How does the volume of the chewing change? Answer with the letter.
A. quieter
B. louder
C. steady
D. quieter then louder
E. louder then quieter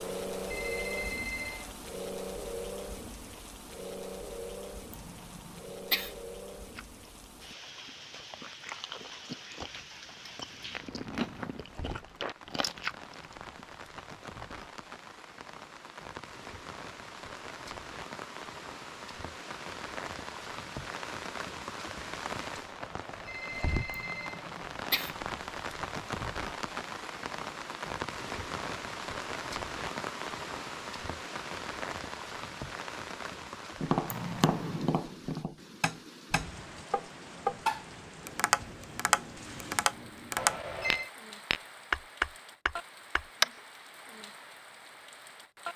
B.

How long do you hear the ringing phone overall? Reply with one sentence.
The ringing phone can be heard for 4 seconds in total.